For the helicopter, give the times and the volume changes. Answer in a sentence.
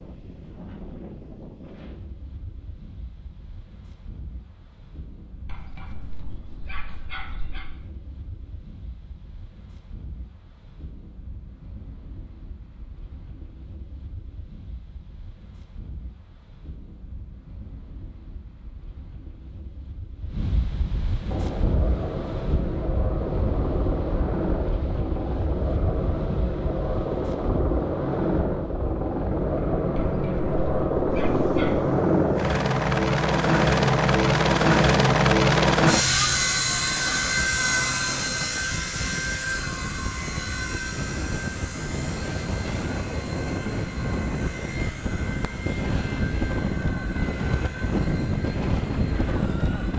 The helicopter can be heard from 21.2 to 49.9 s, getting louder then quieter.